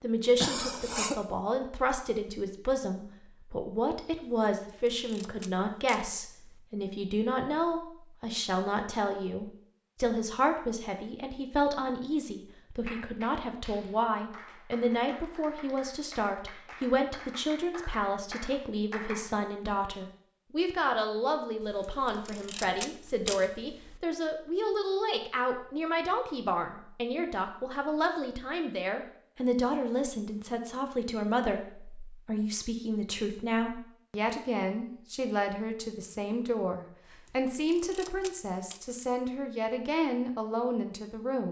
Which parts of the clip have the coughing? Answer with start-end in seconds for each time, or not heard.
0.4-1.1.